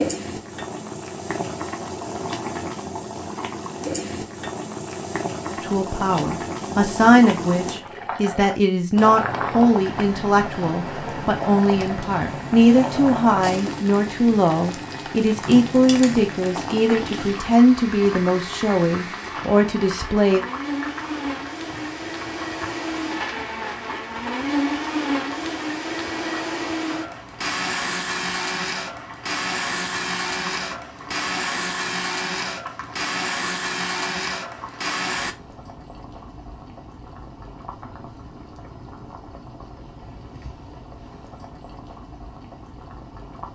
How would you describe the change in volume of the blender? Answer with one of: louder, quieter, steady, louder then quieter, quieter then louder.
louder.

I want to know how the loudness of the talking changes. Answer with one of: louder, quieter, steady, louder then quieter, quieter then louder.
steady.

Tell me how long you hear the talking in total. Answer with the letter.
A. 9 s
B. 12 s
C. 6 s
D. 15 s
D.